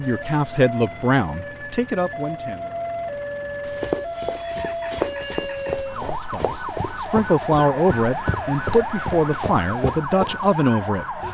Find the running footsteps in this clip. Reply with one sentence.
The running footsteps can be heard from 3.6 to 10.6 s.